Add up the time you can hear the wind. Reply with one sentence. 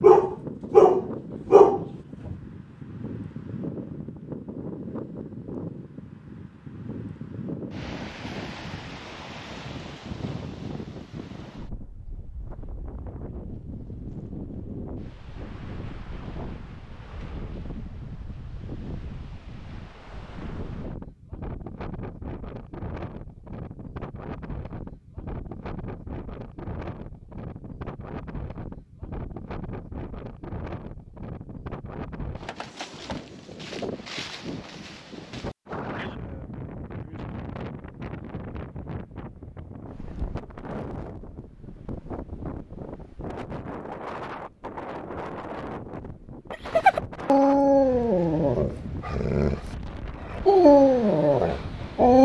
The wind can be heard for 52 seconds in total.